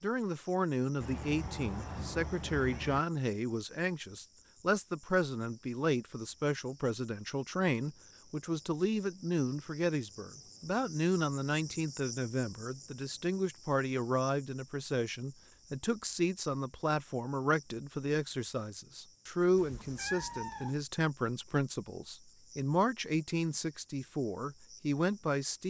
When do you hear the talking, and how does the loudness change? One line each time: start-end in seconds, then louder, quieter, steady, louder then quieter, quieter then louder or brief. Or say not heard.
0.0-25.6 steady.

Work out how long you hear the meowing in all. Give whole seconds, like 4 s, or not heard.
3 s.